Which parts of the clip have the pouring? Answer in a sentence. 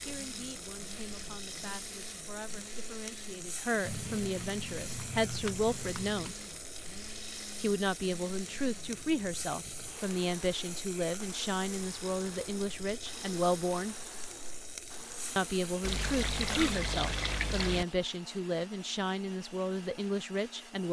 You can hear the pouring from 3.9 to 6.3 s and from 15.8 to 17.9 s.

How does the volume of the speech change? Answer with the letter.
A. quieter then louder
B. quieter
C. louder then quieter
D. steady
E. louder
E.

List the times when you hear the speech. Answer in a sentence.
The speech can be heard from 0.0 to 6.4 s, from 7.6 to 13.9 s and from 15.3 to 20.8 s.